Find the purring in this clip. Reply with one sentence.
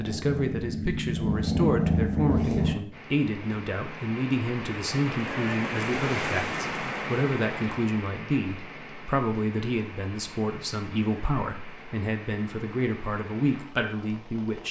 You can hear the purring from 0.0 to 2.8 s.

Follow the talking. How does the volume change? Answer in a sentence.
The volume of the talking stays about the same.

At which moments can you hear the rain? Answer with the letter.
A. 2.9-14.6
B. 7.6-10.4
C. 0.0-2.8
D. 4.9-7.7
A.